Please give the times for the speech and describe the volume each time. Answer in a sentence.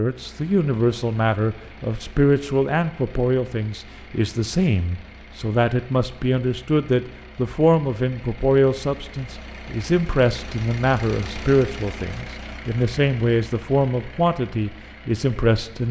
The speech can be heard from 0.0 to 15.8 s, at a steady volume.